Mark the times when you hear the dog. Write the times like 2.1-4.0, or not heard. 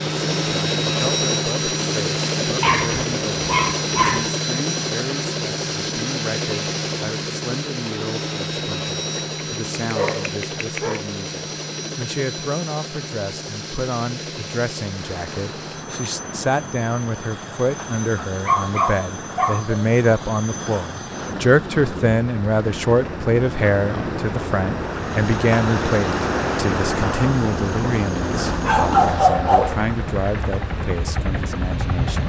2.6-4.3, 9.2-11.1, 18.1-19.8, 28.6-29.9.